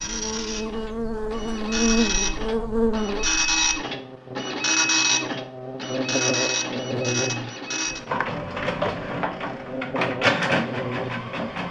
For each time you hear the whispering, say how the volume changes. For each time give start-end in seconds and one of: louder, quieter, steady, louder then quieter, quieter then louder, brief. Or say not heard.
not heard.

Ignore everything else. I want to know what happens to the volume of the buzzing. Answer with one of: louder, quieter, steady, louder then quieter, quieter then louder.
quieter.